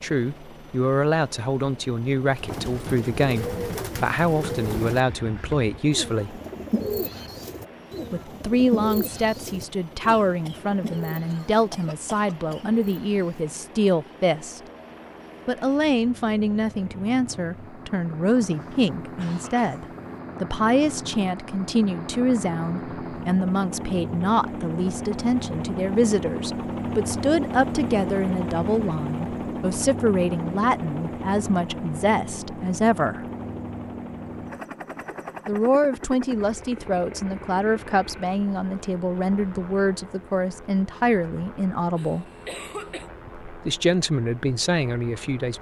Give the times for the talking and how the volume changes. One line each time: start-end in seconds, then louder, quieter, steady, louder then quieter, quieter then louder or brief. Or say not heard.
0.0-6.4 steady
8.1-14.6 steady
15.4-33.2 steady
35.5-42.2 steady
43.5-45.5 brief.